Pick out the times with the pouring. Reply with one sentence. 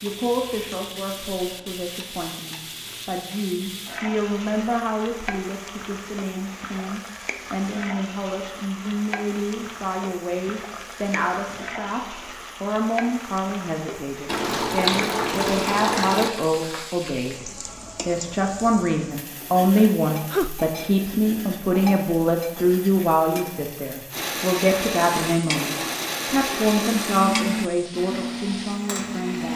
The pouring can be heard from 14.2 to 16.3 s.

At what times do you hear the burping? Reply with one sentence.
The burping can be heard from 19.8 to 20.6 s.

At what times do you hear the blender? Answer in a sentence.
You can hear the blender from 24.1 to 29.5 s.